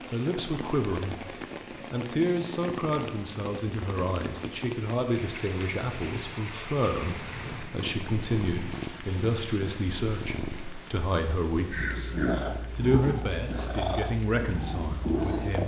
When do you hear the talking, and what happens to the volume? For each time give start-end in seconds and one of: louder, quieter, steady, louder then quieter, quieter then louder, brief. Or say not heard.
0.1-1.1 brief
1.9-12.1 steady
12.8-15.6 brief.